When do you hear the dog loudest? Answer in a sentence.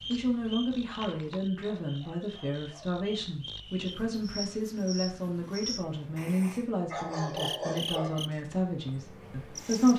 The volume of the dog peaks at 8 seconds.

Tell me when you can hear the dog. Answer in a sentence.
You can hear the dog from 1.6 to 3.0 s and from 6.2 to 8.2 s.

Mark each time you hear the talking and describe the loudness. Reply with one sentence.
The talking can be heard from 0.1 to 9.9 s, at a steady volume.